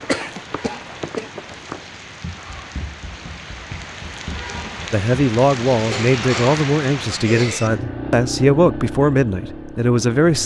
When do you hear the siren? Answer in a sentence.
You can't hear the siren here.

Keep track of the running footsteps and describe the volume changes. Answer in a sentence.
The loudness of the running footsteps goes down, then up.